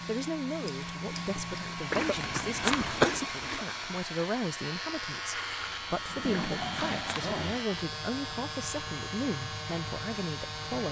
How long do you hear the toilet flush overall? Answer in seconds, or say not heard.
3 s.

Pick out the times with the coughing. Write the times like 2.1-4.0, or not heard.
1.9-3.2, 6.3-7.3.